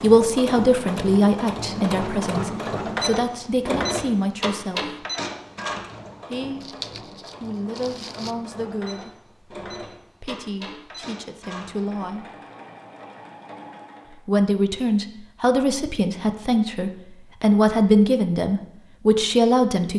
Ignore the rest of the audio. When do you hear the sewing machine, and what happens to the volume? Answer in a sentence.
You can hear the sewing machine from 0.0 to 14.2 s, getting quieter.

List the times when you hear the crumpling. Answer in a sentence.
The crumpling can be heard from 6.6 to 8.3 s.